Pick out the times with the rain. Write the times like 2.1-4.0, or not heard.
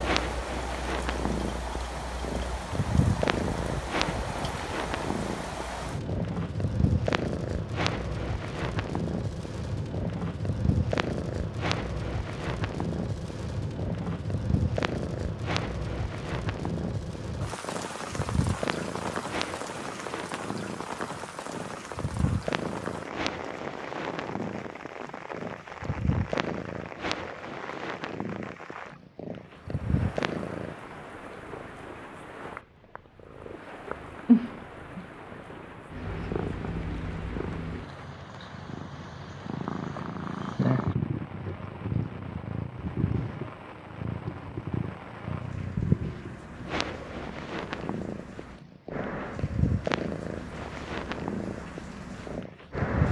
0.0-53.0.